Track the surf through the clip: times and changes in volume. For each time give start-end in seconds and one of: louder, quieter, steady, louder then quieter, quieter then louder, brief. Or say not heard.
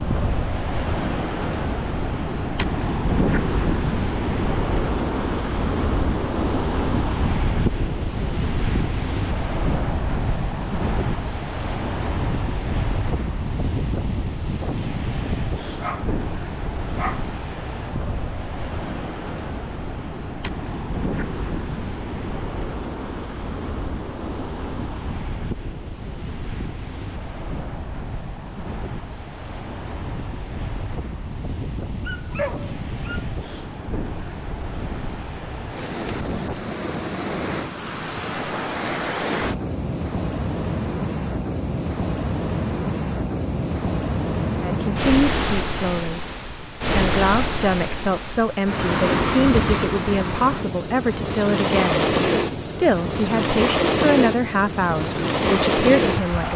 0.0-56.5 quieter then louder.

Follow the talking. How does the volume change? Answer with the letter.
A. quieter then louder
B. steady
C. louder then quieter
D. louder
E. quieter
B.